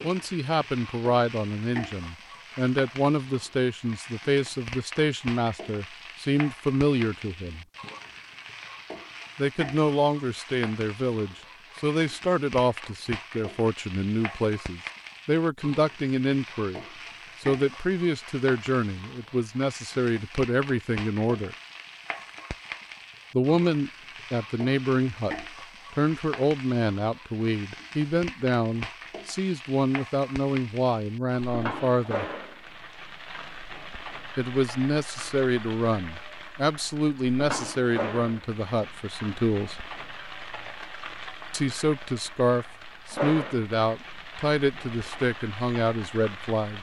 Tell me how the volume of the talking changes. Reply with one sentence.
The loudness of the talking stays about the same.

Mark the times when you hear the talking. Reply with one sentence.
You can hear the talking from 0.0 to 7.7 s, from 9.3 to 21.6 s, from 23.3 to 32.2 s, from 34.4 to 39.8 s and from 41.5 to 46.7 s.